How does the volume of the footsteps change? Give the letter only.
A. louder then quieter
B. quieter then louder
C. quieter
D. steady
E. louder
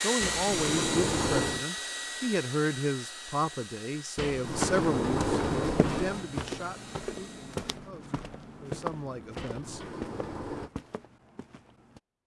C.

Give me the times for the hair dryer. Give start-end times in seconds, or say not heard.
0.0-7.7.